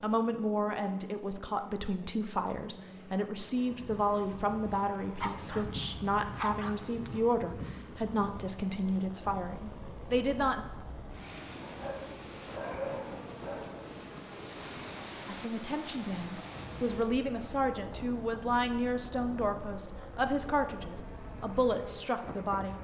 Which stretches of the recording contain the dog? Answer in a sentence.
You can hear the dog from 5.2 to 7.2 s and from 11.6 to 13.9 s.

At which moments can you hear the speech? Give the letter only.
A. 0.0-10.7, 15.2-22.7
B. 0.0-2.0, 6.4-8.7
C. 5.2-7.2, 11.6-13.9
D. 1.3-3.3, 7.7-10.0
A.